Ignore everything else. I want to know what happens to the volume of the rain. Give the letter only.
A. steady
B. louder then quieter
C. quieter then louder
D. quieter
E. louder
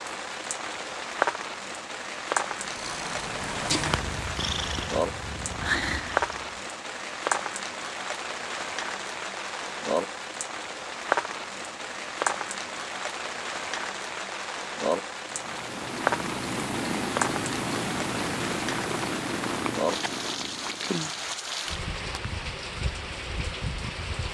A.